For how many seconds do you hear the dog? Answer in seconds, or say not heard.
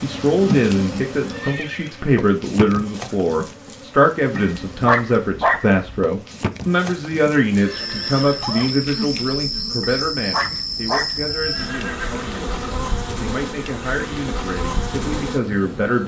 3 s.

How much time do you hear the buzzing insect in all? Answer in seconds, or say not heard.
16 s.